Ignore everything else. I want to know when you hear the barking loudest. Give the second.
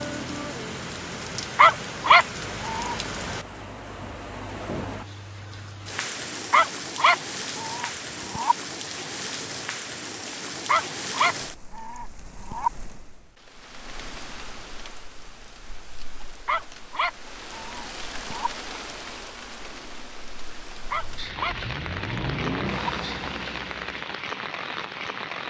2 s.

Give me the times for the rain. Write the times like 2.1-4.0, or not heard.
0.0-25.4.